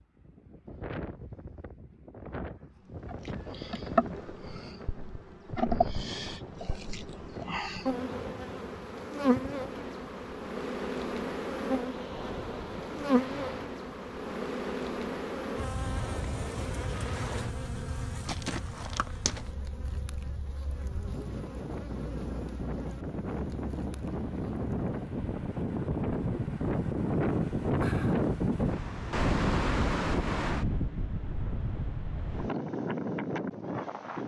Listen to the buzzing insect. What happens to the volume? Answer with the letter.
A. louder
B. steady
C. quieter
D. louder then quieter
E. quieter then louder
C.